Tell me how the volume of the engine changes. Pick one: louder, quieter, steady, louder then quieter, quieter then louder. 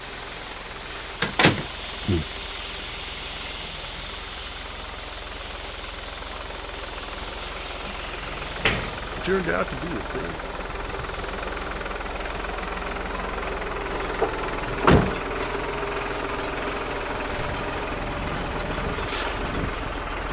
louder.